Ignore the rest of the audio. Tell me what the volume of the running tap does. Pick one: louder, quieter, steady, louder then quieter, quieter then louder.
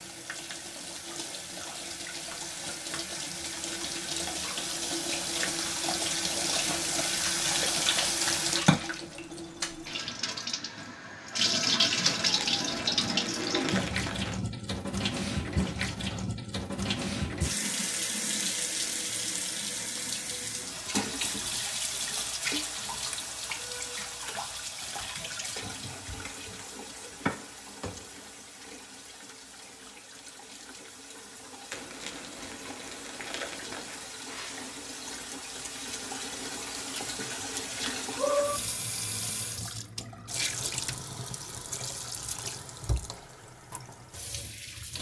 quieter then louder.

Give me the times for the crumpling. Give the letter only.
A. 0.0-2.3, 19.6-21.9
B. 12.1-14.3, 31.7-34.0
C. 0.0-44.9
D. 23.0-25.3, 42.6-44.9
B.